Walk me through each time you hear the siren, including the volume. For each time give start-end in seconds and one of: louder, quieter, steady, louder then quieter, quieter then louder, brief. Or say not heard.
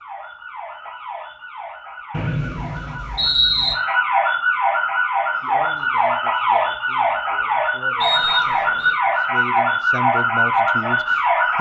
0.0-11.5 louder.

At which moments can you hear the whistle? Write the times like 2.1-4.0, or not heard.
2.1-3.8, 8.0-8.9.